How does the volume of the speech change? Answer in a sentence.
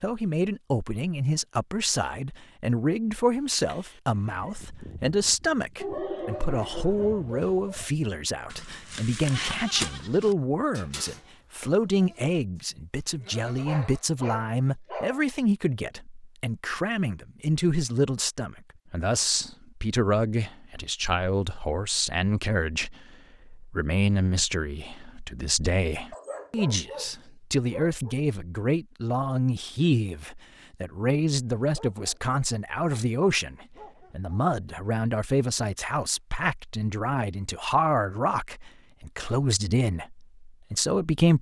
The loudness of the speech stays about the same.